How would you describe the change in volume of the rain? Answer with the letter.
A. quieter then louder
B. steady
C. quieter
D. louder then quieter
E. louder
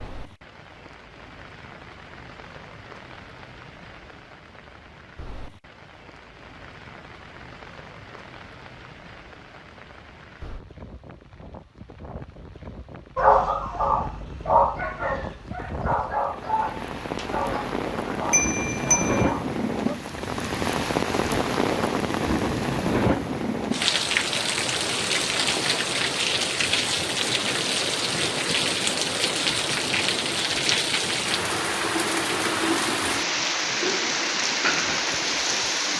E.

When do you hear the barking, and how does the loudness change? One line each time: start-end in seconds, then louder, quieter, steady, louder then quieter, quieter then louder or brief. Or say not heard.
13.2-19.9 quieter.